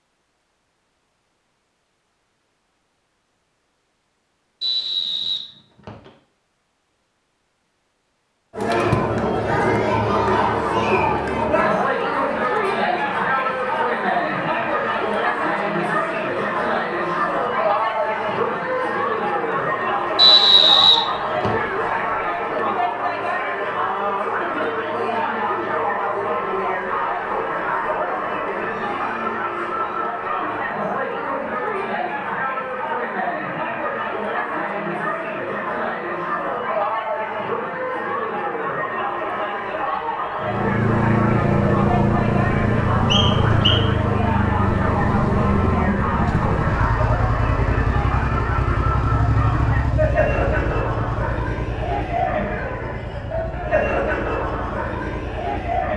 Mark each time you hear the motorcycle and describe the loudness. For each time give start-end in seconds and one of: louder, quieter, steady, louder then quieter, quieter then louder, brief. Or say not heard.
40.4-55.9 quieter.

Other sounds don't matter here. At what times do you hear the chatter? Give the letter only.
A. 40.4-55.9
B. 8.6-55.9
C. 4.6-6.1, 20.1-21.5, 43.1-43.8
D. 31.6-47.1
B.